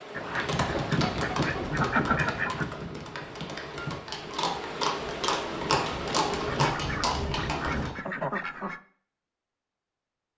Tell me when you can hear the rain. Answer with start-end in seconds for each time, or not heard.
0.0-6.8.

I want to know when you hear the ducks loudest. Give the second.
2 s.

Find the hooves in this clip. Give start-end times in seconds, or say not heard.
0.2-8.0.